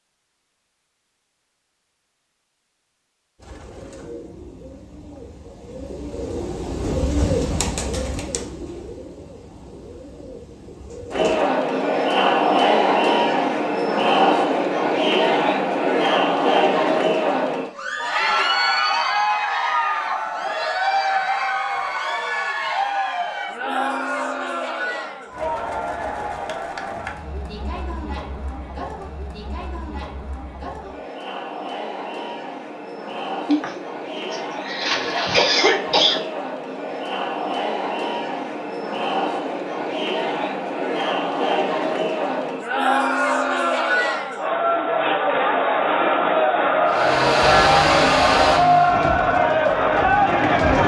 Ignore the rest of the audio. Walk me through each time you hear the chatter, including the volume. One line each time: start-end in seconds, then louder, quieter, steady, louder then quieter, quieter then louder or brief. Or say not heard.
11.1-50.8 quieter then louder.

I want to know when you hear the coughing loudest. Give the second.
36 s.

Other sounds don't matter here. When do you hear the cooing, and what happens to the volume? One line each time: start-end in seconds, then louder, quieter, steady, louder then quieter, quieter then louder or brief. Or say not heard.
3.4-11.4 louder then quieter.